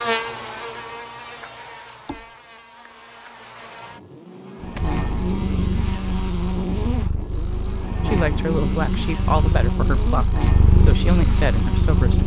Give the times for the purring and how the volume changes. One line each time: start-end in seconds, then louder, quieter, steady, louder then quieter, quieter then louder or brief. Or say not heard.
4.8-12.2 louder.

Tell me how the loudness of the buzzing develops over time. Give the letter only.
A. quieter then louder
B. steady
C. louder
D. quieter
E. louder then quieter
C.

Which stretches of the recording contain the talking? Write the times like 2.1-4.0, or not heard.
8.1-12.2.